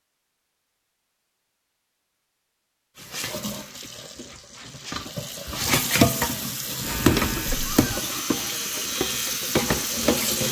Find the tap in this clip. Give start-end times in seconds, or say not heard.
3.0-10.4.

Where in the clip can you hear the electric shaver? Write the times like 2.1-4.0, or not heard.
6.8-10.4.